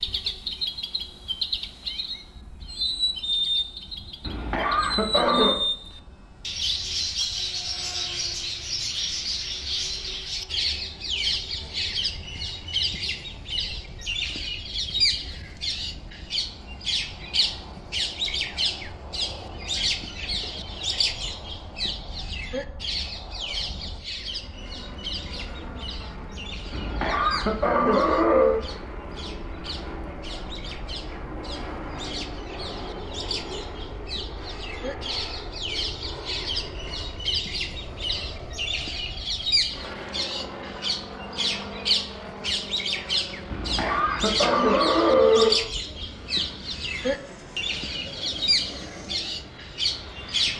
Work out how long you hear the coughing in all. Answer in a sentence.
You can hear the coughing for 5 seconds altogether.